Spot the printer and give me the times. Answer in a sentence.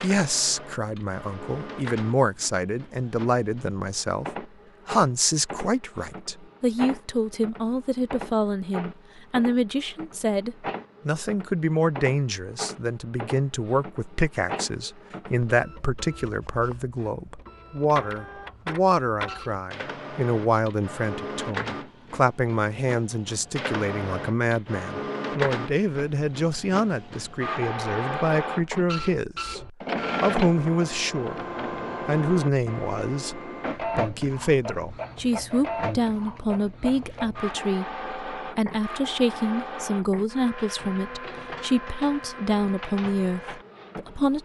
The printer can be heard from 0.0 to 44.3 s.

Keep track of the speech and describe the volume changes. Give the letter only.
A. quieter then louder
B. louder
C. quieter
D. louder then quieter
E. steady
E.